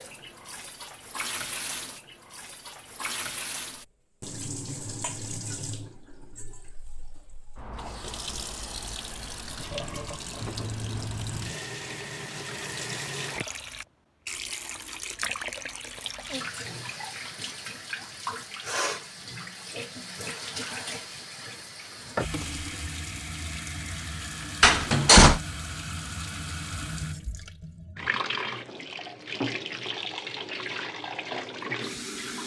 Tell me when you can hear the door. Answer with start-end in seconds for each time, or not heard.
24.6-25.4.